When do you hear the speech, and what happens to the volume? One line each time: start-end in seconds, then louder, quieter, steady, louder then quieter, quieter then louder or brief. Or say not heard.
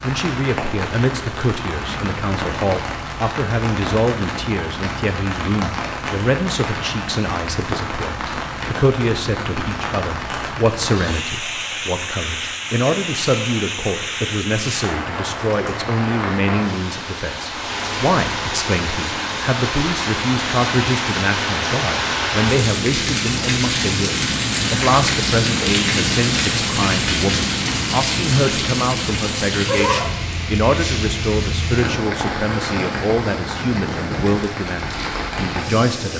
0.0-36.1 steady.